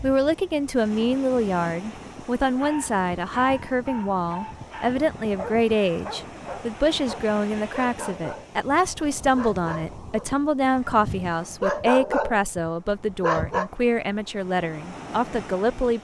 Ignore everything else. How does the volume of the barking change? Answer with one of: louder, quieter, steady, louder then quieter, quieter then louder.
louder.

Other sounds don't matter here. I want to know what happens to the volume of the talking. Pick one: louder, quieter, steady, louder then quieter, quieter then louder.
steady.